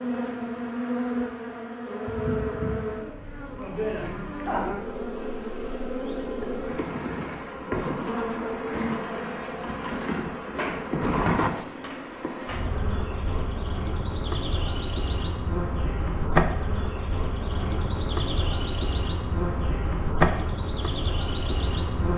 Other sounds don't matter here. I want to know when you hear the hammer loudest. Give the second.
11 s.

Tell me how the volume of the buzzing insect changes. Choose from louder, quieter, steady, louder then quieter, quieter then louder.
steady.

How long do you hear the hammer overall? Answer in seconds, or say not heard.
2 s.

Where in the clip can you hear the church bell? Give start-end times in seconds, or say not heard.
not heard.